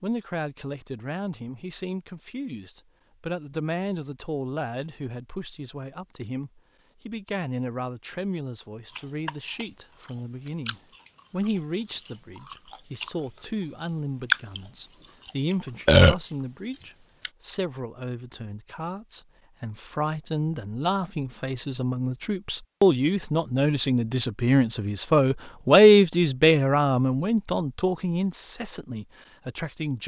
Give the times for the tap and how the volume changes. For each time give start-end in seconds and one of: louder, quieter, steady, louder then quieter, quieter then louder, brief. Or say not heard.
not heard.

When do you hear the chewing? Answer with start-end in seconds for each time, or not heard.
8.8-17.3.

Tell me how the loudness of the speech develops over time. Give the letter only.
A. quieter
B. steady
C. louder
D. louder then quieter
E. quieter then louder
C.